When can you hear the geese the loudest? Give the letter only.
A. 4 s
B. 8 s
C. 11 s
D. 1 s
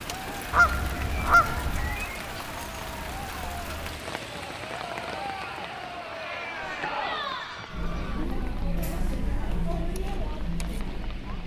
D.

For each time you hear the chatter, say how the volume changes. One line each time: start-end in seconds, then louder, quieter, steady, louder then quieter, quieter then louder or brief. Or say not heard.
0.1-11.4 louder.